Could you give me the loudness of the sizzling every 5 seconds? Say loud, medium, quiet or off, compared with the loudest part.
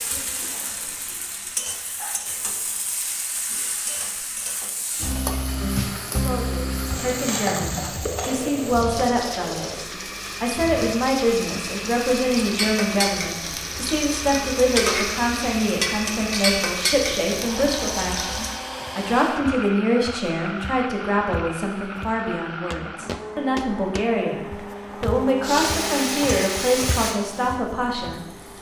medium, loud, loud, loud, off, loud.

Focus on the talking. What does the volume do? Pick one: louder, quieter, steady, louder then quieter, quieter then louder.
steady.